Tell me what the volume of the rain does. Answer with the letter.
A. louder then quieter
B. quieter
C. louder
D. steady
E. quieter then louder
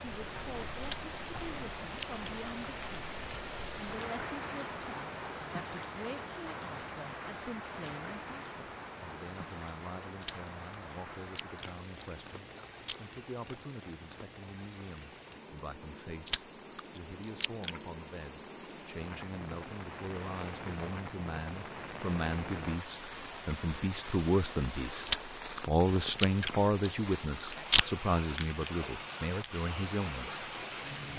E.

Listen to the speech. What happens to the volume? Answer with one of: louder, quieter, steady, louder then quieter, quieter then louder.
louder.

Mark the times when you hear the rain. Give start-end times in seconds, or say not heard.
0.0-31.1.